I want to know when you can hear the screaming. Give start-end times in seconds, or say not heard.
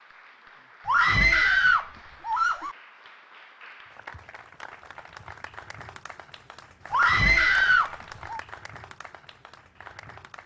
0.8-2.8, 6.9-8.4.